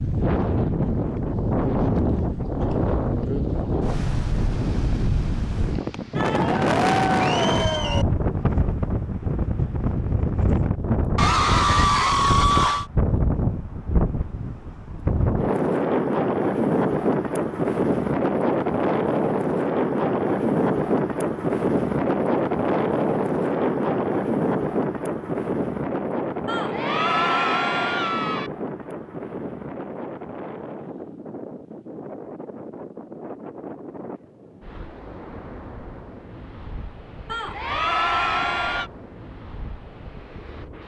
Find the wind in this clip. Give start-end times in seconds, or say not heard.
0.0-40.8.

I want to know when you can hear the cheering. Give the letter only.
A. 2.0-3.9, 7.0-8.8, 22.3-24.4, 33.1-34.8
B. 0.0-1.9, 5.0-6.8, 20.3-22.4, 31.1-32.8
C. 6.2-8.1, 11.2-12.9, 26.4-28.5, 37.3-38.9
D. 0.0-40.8
C.